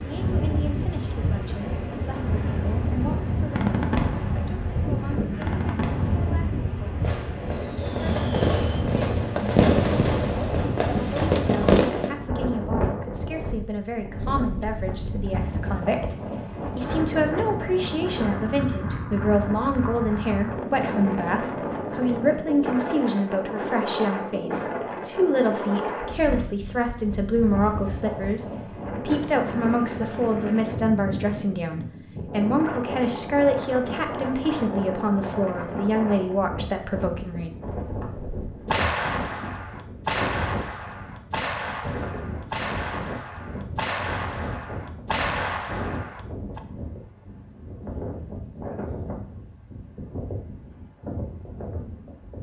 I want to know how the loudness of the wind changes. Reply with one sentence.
The loudness of the wind goes down.